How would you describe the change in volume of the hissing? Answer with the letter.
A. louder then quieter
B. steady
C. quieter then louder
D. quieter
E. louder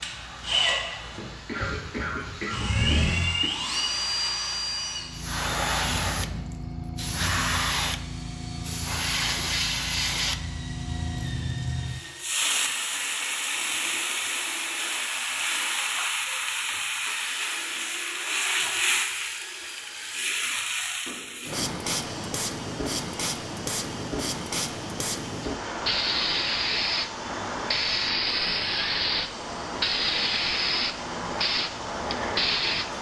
E.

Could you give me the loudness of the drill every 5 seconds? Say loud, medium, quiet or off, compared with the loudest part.
loud, quiet, quiet, quiet, quiet, quiet, quiet.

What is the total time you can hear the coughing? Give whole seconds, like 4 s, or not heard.
2 s.